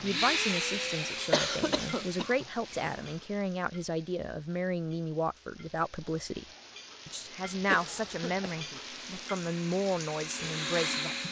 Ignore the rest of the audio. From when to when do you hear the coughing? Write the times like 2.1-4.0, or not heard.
1.3-3.1, 7.0-8.8.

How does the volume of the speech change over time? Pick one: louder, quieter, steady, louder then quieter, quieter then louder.
steady.